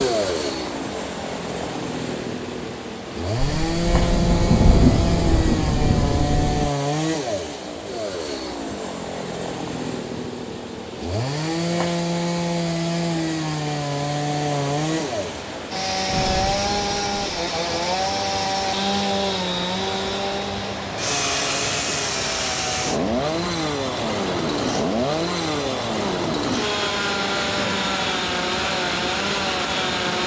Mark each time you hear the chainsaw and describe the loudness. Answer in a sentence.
You can hear the chainsaw from 0.0 to 30.2 s, at a steady volume.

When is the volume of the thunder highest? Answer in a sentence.
The volume of the thunder peaks at 5 seconds.